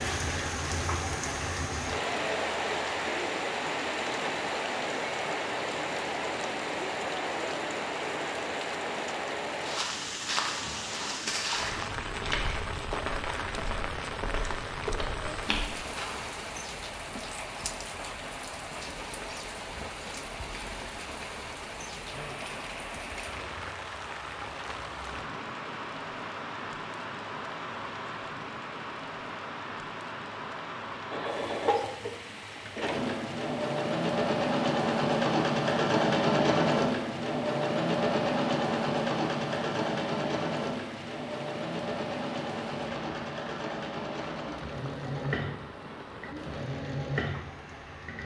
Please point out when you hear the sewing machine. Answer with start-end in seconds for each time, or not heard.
31.1-48.2.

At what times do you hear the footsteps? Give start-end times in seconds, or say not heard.
9.6-16.2.